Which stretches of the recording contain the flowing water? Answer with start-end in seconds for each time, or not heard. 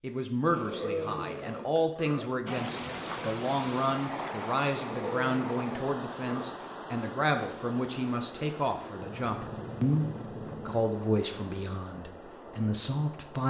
2.5-13.4.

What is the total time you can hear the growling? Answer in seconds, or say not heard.
5 s.